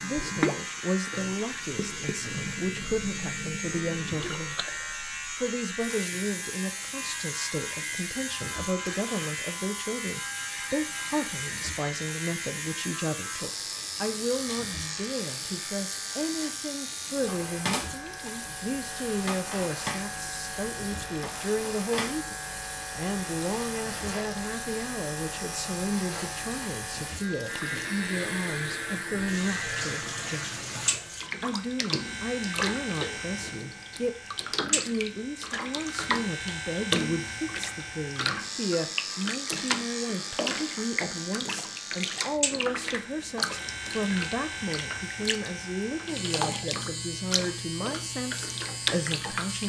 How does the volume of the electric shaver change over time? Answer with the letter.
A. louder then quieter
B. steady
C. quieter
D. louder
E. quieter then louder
B.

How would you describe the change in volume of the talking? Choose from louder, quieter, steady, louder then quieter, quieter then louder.
steady.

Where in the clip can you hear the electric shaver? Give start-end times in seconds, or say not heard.
0.0-49.6.